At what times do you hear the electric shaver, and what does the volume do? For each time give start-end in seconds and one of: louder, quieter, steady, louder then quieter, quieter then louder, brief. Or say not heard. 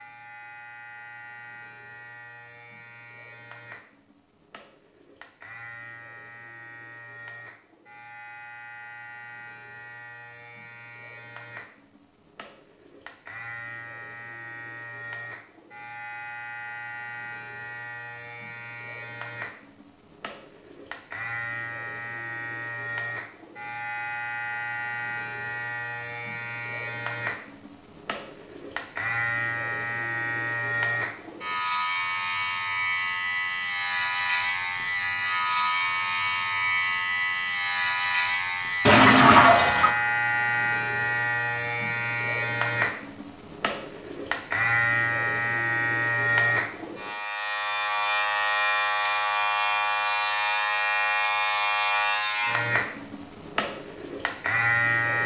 0.0-55.2 louder.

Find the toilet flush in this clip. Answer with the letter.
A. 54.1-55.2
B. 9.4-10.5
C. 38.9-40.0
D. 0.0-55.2
C.